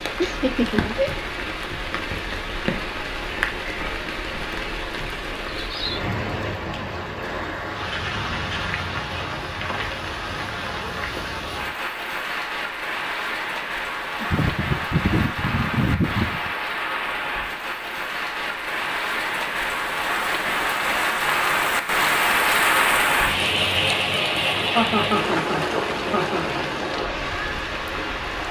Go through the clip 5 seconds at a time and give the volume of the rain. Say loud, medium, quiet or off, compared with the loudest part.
medium, medium, medium, medium, loud, medium.